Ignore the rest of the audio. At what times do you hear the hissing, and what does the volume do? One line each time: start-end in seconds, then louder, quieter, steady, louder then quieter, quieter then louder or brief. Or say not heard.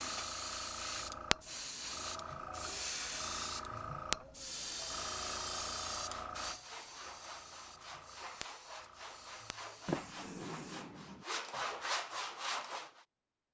0.0-10.8 quieter.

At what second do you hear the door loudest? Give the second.
10 s.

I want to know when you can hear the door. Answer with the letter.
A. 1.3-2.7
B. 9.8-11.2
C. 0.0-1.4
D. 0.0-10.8
B.